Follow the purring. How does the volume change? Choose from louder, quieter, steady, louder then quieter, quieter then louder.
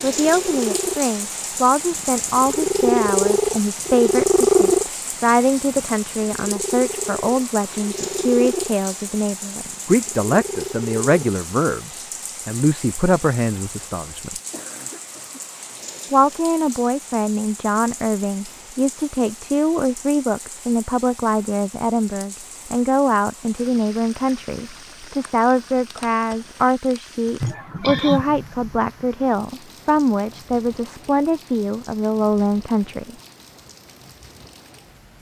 louder then quieter.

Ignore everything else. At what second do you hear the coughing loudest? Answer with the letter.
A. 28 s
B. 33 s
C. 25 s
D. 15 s
A.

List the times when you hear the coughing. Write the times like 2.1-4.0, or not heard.
14.3-15.8, 27.4-28.4.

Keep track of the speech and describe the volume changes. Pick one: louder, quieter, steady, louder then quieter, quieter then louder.
steady.